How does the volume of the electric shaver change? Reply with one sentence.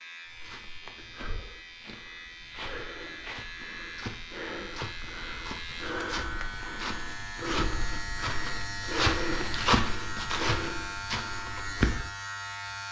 The volume of the electric shaver goes up.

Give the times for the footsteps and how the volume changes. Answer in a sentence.
You can hear the footsteps from 0.2 to 12.1 s, getting louder.